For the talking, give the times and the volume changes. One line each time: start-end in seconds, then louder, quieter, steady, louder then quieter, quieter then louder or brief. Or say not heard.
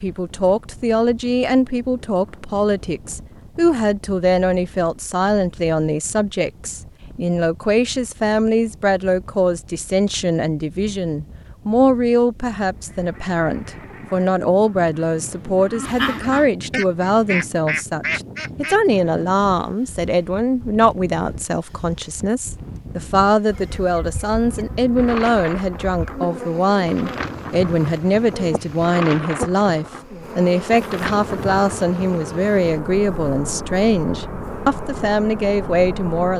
0.0-36.3 steady.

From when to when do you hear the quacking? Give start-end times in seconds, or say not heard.
12.8-18.8.